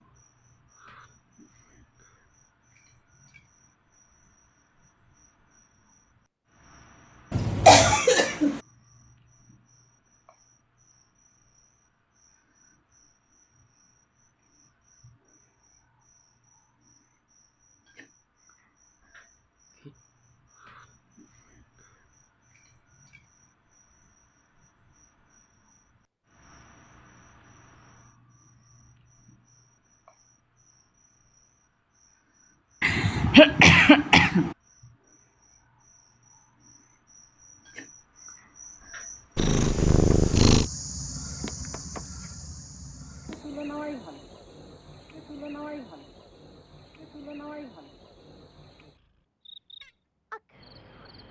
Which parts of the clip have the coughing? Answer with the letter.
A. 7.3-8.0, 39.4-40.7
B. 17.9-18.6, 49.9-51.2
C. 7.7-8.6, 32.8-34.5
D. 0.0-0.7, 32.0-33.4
C.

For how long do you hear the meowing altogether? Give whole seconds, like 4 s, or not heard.
2 s.